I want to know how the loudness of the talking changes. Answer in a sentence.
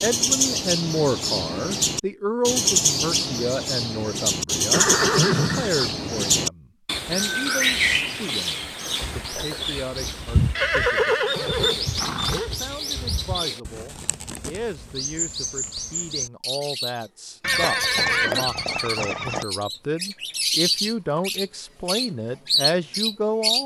The volume of the talking goes down, then up.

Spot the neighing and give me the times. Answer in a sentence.
The neighing can be heard from 4.7 to 5.9 s, from 10.6 to 12.5 s and from 17.4 to 19.4 s.